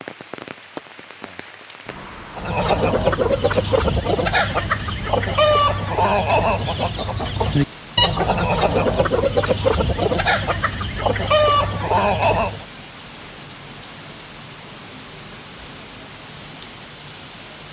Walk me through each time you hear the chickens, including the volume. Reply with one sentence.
You can hear the chickens from 2.4 to 12.7 s, at a steady volume.